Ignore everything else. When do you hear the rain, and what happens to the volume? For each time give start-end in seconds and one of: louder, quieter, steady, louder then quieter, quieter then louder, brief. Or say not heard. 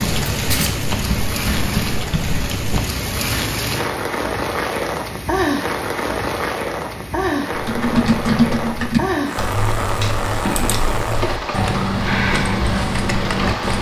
0.0-13.7 steady.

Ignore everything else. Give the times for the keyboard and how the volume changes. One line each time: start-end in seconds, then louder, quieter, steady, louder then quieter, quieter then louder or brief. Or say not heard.
0.0-2.8 brief
7.5-13.7 quieter then louder.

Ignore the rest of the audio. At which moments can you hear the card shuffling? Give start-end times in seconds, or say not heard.
0.3-0.8, 10.0-10.8.